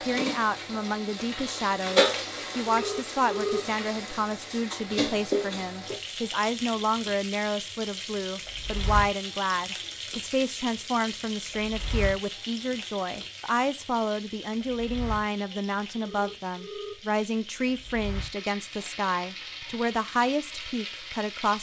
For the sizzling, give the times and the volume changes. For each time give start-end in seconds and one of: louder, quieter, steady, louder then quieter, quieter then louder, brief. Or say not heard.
0.0-21.5 quieter.